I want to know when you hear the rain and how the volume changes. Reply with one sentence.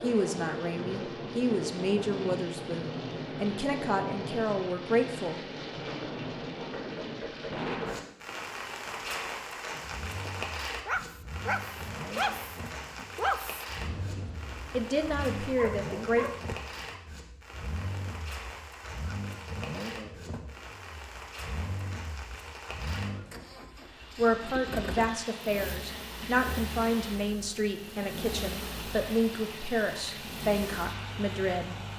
The rain can be heard from 0.0 to 31.9 s, getting quieter.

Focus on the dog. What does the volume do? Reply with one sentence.
The volume of the dog goes down, then up.